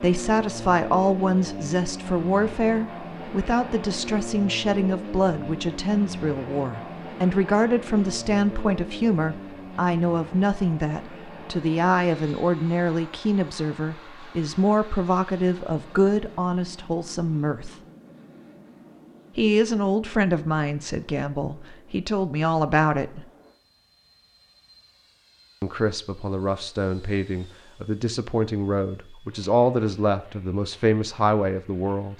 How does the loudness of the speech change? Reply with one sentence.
The volume of the speech stays about the same.